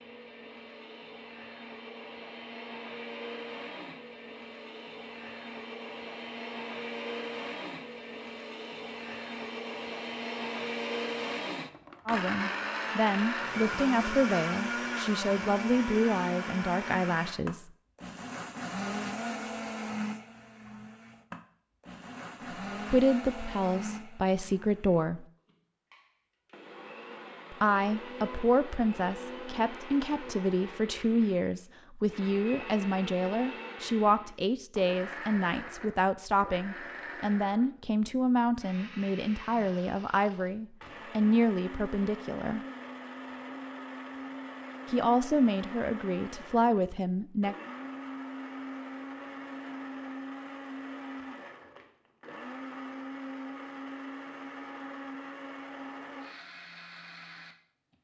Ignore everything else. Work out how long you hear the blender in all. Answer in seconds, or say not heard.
58 s.